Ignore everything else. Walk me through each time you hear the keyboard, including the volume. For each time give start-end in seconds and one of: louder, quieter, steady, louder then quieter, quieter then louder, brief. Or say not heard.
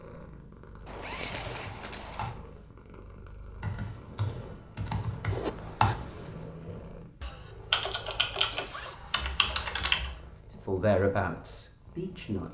1.1-10.4 louder.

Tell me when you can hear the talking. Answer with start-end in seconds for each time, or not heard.
10.5-12.4.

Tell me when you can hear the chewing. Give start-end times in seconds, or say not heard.
not heard.